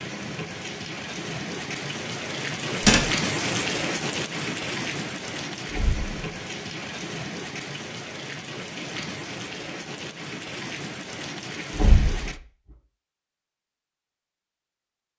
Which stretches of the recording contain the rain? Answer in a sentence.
You can hear the rain from 0.0 to 12.4 s.